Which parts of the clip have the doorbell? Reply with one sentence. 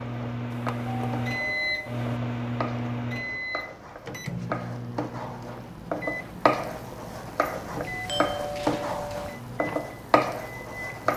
You can hear the doorbell from 0.5 to 2.0 s and from 7.8 to 9.4 s.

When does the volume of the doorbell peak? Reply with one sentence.
The loudest moment of the doorbell is at 8 seconds.